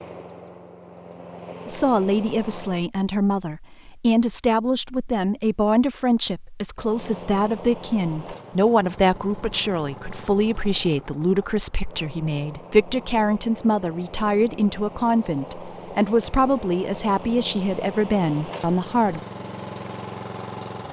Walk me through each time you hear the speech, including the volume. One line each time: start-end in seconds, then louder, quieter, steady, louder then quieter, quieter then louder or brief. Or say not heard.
1.6-19.2 steady.